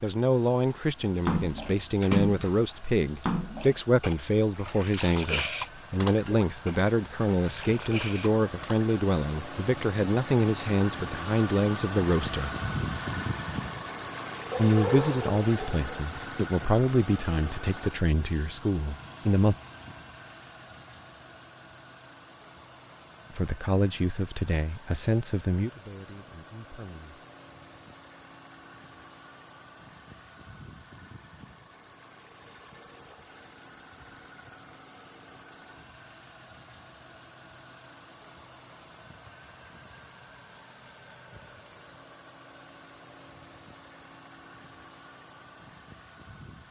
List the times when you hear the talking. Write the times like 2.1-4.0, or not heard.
0.0-12.6, 14.6-19.6, 23.4-27.3.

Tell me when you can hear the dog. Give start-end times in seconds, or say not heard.
14.5-16.1.